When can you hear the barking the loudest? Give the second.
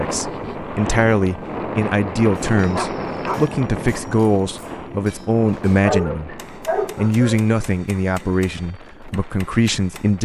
6 s.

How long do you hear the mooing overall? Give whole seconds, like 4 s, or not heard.
not heard.